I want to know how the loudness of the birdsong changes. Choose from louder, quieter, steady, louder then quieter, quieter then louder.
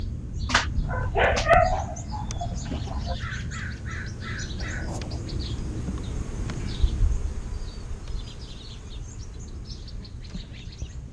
quieter.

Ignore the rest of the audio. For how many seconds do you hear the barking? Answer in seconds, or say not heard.
3 s.